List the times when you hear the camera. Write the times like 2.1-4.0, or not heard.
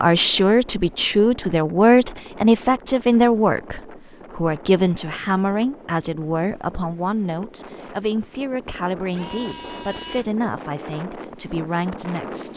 9.1-10.2.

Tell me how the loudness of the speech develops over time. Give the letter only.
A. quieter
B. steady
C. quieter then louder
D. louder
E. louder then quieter
A.